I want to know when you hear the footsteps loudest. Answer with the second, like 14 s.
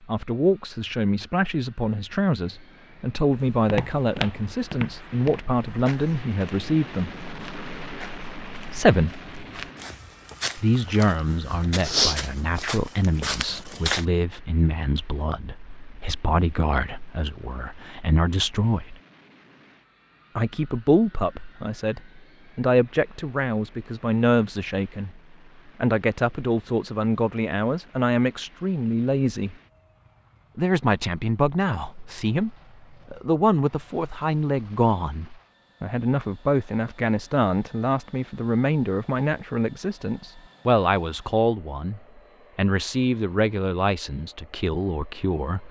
12 s.